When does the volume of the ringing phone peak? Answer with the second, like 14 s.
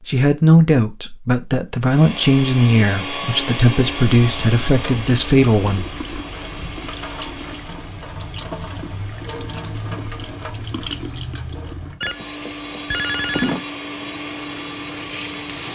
13 s.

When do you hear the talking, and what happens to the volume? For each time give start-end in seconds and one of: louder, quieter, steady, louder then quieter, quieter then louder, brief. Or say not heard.
0.1-6.0 steady.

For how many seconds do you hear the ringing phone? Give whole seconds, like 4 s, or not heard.
2 s.